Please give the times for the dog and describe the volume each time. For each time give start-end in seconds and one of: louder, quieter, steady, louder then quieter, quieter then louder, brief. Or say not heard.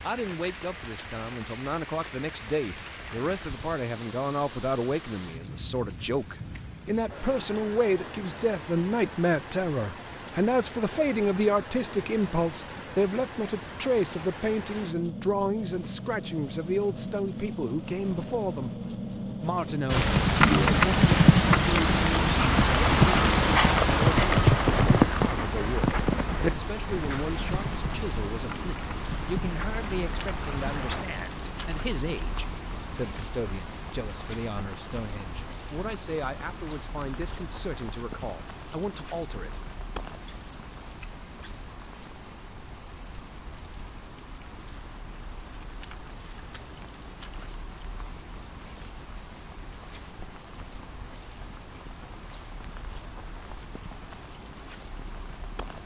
not heard.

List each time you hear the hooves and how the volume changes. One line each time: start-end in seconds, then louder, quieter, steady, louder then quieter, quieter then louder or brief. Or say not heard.
19.9-31.1 quieter.